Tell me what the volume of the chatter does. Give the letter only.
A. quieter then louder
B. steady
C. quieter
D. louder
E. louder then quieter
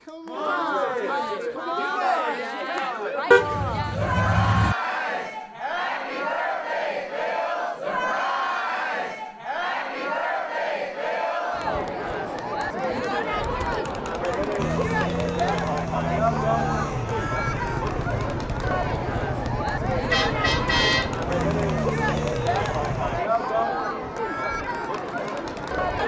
B.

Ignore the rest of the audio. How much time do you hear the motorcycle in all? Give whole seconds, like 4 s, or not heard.
9 s.